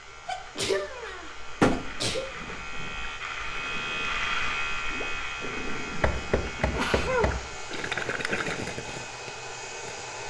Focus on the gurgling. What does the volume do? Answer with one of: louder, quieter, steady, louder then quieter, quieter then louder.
louder.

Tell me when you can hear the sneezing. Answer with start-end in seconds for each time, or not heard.
0.2-2.2, 6.5-7.5.